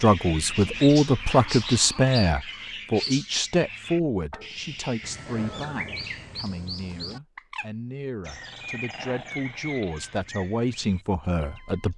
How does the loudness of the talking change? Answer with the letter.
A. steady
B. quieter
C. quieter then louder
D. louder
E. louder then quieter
C.